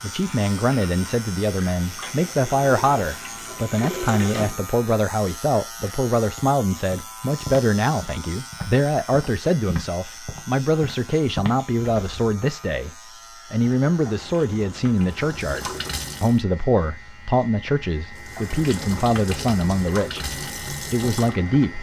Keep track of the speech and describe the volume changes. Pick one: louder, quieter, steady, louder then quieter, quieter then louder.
steady.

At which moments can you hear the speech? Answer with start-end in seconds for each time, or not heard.
0.0-21.7.